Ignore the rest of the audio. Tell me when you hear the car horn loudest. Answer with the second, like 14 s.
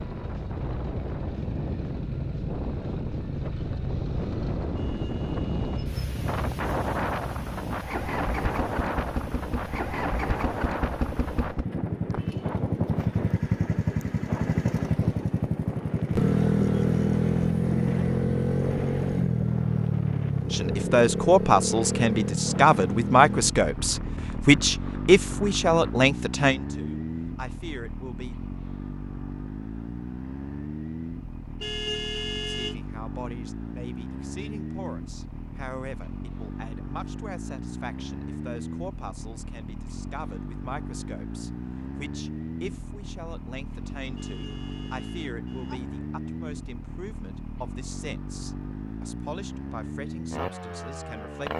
32 s.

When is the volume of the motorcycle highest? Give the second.
17 s.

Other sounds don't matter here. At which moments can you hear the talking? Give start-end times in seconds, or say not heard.
20.5-28.4, 32.5-51.5.